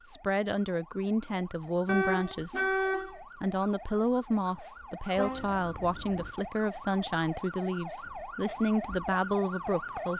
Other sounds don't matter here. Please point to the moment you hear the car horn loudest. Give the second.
3 s.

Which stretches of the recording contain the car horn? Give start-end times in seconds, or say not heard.
1.9-3.1, 5.2-6.3.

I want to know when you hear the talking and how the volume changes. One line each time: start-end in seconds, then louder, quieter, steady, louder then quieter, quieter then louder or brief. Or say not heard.
0.1-10.1 steady.